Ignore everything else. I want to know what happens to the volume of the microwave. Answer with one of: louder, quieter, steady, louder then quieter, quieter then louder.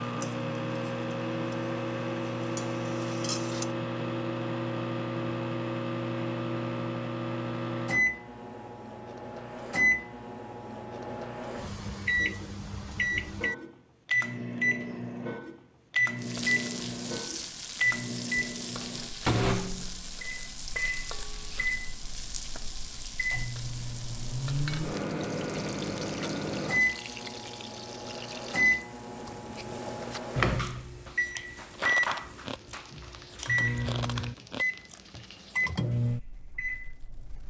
steady.